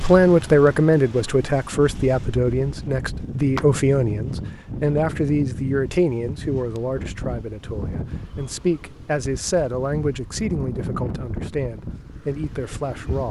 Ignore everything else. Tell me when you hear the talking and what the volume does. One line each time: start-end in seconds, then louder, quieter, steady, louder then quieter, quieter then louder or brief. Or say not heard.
0.0-13.2 quieter.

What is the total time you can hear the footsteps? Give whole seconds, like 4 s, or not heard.
not heard.